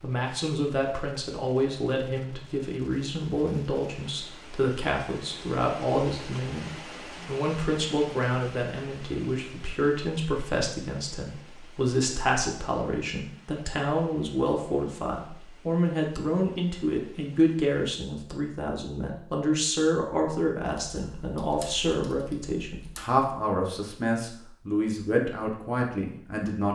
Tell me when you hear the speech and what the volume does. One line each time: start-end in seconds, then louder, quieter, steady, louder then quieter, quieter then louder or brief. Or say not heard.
0.0-26.6 steady.